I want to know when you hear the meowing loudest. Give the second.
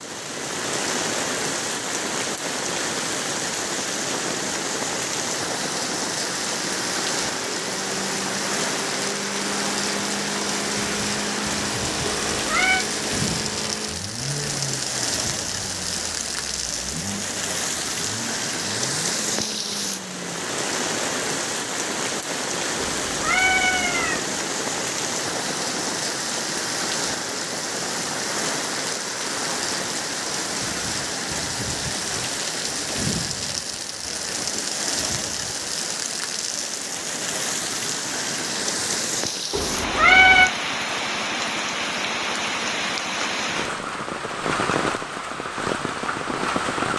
40 s.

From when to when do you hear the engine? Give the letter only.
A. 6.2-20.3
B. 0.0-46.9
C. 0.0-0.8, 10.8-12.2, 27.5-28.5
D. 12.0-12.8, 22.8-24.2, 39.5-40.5
A.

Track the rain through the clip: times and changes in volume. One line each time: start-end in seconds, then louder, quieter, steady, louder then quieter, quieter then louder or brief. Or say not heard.
0.0-46.9 steady.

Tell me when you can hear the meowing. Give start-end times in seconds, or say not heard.
12.0-12.8, 22.8-24.2, 39.5-40.5.